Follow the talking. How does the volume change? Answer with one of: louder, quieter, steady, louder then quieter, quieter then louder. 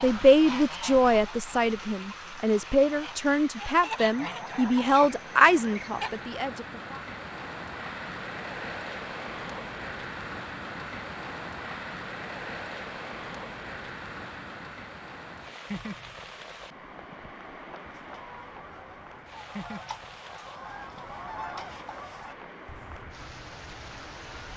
steady.